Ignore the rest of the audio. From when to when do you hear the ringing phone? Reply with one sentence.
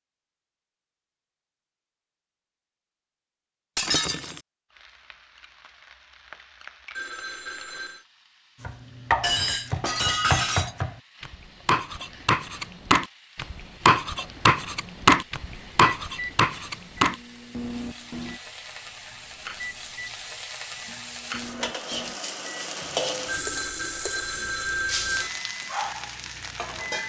The ringing phone can be heard from 7.0 to 8.1 s and from 23.2 to 25.3 s.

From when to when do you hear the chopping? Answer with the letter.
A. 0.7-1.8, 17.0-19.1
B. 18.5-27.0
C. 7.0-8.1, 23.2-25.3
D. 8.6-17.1
D.